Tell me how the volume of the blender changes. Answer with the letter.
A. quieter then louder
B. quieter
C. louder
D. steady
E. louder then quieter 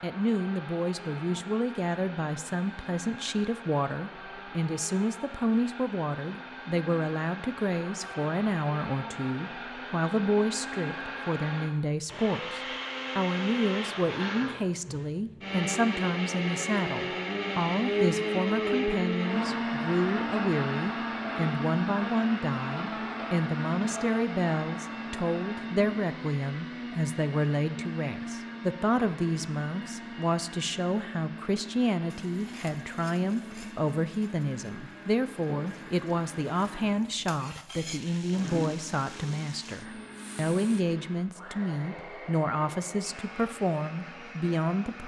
E.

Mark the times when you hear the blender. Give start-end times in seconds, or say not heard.
0.0-45.0.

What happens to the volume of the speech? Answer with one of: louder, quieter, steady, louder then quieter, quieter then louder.
steady.